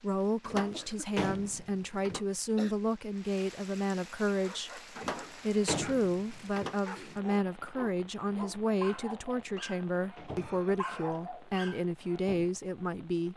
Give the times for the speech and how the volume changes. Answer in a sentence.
The speech can be heard from 0.0 to 13.3 s, at a steady volume.